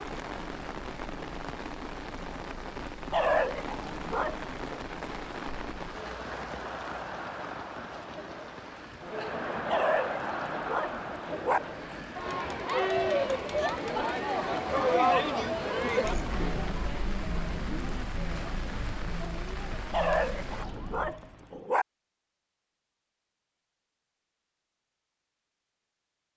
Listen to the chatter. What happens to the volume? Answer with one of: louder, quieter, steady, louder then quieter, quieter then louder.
louder then quieter.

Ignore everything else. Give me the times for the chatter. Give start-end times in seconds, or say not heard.
0.0-21.1.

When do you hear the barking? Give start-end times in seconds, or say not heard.
3.1-4.8, 9.7-11.6, 19.9-21.9.